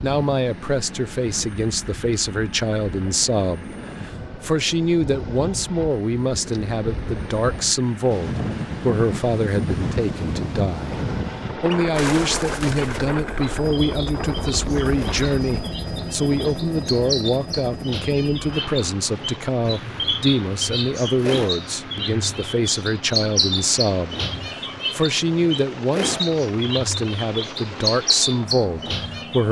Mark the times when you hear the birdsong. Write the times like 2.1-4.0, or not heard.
11.8-29.4.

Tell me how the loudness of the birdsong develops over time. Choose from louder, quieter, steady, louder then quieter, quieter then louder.
louder.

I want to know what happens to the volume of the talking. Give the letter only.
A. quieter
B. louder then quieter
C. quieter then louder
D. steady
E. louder
D.